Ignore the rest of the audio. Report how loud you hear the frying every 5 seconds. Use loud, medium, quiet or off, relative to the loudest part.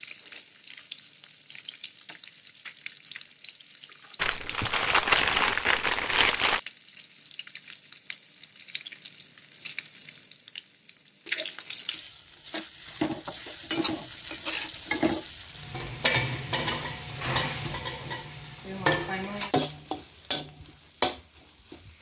quiet, quiet, loud, loud, medium.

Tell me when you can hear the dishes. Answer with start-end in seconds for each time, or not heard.
not heard.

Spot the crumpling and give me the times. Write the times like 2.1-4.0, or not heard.
4.2-6.6.